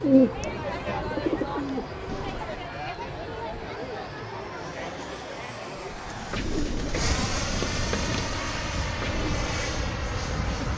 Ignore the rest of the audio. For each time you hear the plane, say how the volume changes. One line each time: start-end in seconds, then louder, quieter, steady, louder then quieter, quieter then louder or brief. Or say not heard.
0.0-10.7 louder.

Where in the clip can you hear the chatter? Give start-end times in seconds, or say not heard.
0.0-6.4.